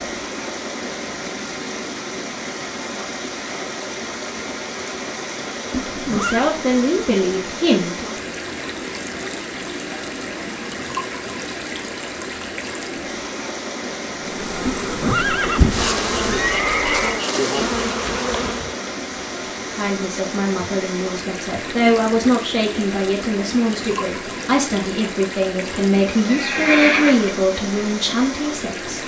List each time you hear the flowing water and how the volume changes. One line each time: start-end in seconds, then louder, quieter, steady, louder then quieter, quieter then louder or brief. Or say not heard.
0.0-29.0 steady.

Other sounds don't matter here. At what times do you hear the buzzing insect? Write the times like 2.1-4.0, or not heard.
14.2-18.8.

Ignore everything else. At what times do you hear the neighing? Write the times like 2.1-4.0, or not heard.
5.7-6.5, 14.7-17.2, 26.2-27.4.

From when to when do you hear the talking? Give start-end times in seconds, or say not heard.
6.0-8.2, 19.6-29.0.